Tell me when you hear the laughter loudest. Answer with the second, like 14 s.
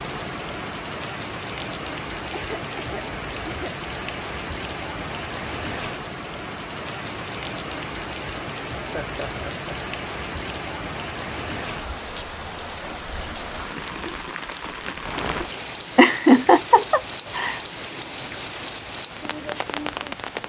16 s.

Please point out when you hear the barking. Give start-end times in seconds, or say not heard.
not heard.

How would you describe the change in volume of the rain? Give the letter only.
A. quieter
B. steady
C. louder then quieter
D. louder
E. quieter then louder
B.